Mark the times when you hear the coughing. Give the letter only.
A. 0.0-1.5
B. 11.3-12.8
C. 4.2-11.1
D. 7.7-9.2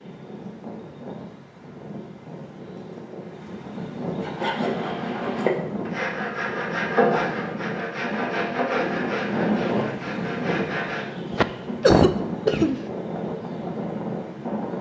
B.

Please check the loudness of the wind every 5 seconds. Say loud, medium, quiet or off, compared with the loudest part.
medium, loud, loud.